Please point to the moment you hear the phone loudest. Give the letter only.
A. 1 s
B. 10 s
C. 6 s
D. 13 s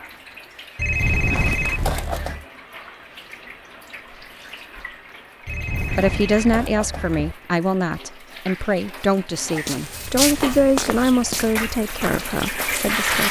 A.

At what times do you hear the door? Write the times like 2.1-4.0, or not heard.
not heard.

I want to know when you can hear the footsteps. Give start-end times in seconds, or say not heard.
9.5-13.2.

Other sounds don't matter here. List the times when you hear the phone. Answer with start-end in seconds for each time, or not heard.
0.8-2.5, 5.5-7.3, 9.9-11.8.